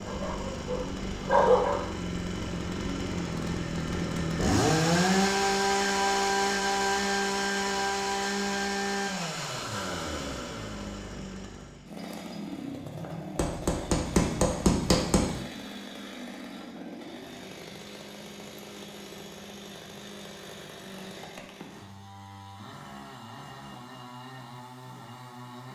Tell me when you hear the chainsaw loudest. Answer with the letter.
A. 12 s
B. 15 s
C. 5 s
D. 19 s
C.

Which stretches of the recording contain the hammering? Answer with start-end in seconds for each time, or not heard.
13.3-15.3.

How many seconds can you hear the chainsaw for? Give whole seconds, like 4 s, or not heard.
26 s.